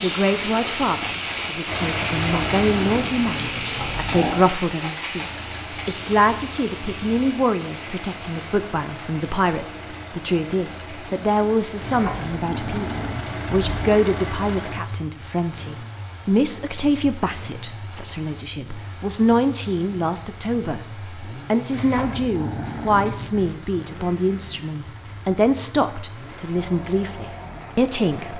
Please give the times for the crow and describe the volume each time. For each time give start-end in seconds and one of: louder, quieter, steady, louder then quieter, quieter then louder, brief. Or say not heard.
not heard.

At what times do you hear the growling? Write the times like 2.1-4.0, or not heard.
2.2-4.5, 11.8-14.0, 21.7-23.6.